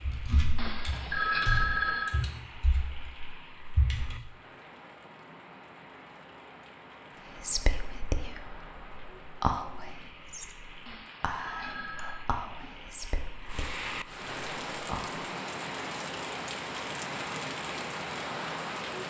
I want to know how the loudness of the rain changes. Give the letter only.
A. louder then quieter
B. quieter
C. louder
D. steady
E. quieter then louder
C.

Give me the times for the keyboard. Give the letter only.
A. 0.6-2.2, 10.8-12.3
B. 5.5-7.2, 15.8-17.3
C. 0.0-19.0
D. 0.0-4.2
D.